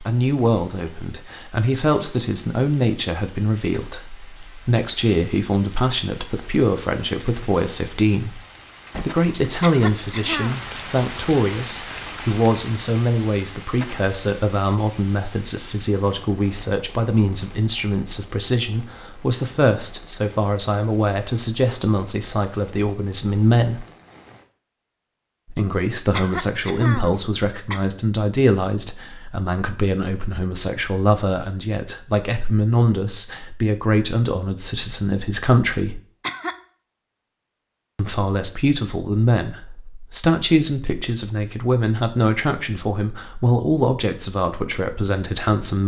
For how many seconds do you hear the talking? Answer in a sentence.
You can hear the talking for 42 seconds altogether.